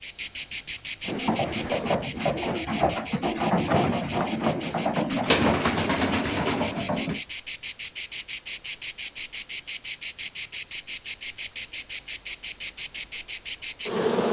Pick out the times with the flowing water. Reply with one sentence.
The flowing water can't be heard in this clip.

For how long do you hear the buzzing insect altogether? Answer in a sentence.
The buzzing insect can be heard for 14 seconds in total.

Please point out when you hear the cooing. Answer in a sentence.
The cooing can be heard from 1.0 to 7.2 s.